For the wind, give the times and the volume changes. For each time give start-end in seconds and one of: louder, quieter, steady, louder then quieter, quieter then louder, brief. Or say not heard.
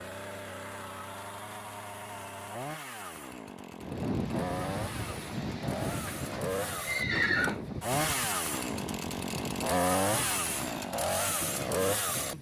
3.8-12.3 quieter.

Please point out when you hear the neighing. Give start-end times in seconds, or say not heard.
6.1-7.6.